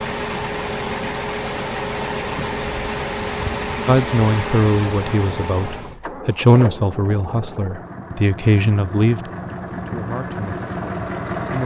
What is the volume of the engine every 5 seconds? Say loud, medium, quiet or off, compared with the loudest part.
loud, medium, loud.